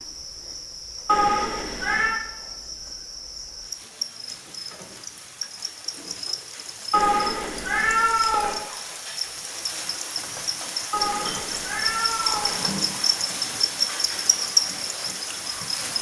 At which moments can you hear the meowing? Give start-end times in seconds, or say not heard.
1.1-2.2, 6.9-8.6, 10.9-12.6.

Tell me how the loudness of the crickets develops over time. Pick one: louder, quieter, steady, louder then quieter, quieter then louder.
louder.